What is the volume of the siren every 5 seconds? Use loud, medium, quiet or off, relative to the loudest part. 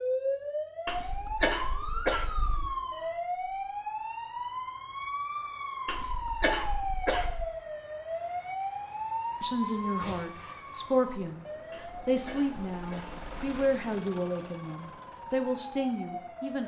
loud, loud, medium, medium.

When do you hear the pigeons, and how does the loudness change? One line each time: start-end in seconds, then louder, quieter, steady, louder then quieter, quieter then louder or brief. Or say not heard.
not heard.